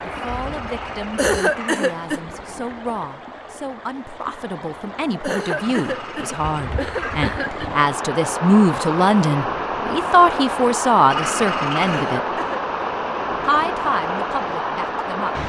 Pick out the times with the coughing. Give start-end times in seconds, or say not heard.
1.1-2.2, 5.2-7.7, 11.8-12.7.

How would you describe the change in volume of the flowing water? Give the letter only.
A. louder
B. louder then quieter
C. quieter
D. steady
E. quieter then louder
A.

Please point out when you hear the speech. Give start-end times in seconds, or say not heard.
0.0-12.2, 13.4-15.4.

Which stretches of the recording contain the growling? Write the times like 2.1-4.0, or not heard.
0.1-2.8, 5.5-7.8, 11.1-12.2.